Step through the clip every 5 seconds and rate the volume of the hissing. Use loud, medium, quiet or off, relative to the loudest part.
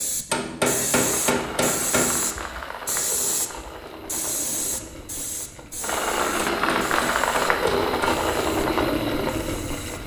loud, medium.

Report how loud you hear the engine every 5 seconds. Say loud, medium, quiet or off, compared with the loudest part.
medium, loud.